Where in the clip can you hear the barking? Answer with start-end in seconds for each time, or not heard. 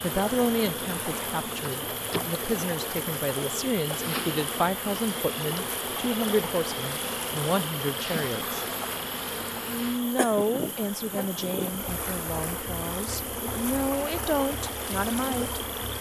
not heard.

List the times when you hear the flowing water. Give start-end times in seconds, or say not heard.
0.0-15.9.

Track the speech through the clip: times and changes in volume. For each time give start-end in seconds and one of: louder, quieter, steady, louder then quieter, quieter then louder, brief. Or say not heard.
0.0-8.6 steady
9.7-15.6 quieter then louder.